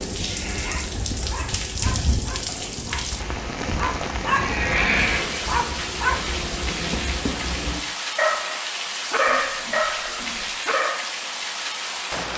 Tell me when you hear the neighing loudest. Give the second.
5 s.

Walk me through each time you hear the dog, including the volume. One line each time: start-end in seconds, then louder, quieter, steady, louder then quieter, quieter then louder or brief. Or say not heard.
0.1-11.1 louder.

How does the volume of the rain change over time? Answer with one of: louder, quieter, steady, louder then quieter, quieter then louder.
steady.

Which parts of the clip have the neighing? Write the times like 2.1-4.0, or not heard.
0.2-0.9, 4.3-5.5, 9.2-10.6.